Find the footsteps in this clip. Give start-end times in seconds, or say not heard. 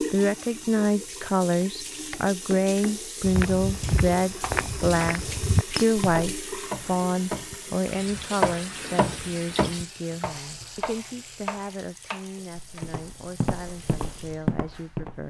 3.2-6.4, 12.5-15.2.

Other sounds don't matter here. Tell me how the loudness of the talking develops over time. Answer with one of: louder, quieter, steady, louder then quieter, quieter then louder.
quieter.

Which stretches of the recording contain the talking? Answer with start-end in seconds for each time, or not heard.
0.0-15.2.